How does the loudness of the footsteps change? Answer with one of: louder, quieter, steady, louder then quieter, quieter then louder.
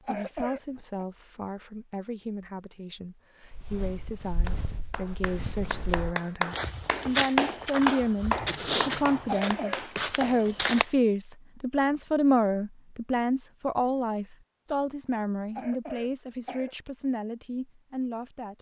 louder then quieter.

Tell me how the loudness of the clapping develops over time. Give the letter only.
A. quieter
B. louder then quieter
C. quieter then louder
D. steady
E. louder
B.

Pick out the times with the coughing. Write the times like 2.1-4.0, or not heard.
0.0-1.1, 9.2-10.4, 15.5-16.8.